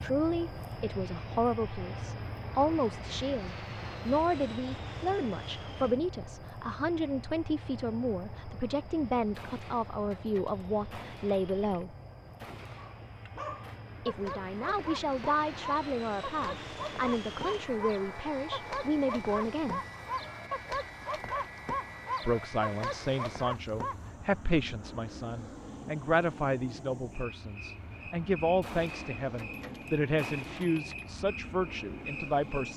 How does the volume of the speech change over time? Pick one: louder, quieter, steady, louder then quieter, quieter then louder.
steady.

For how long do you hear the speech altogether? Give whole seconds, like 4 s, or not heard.
28 s.